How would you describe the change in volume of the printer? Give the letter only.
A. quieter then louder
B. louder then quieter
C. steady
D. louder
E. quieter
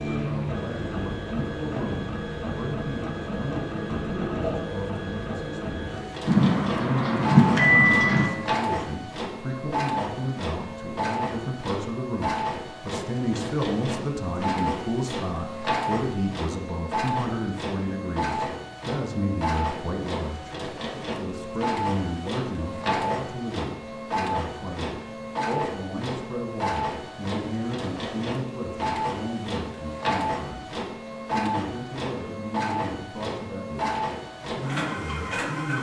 C.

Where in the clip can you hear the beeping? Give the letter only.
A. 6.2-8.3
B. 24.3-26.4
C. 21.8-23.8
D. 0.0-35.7
A.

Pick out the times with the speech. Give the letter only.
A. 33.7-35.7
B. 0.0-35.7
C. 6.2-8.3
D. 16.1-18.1
B.